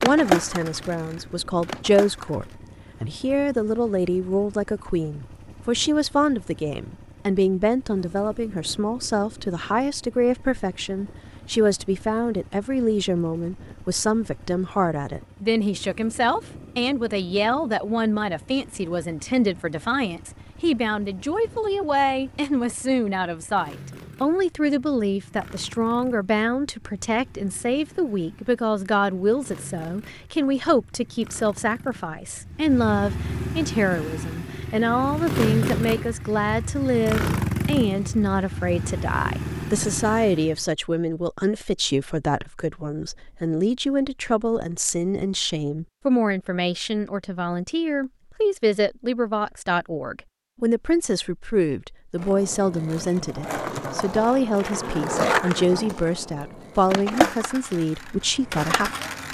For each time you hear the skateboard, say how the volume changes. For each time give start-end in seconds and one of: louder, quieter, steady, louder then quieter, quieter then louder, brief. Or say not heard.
0.0-2.5 brief
52.2-59.3 louder then quieter.